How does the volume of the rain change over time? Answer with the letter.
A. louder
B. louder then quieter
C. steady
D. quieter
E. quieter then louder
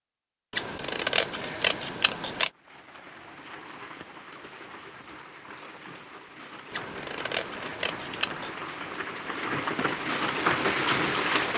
A.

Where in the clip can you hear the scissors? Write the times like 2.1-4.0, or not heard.
0.5-2.5, 6.7-8.6.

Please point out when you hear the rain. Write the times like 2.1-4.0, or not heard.
2.5-11.5.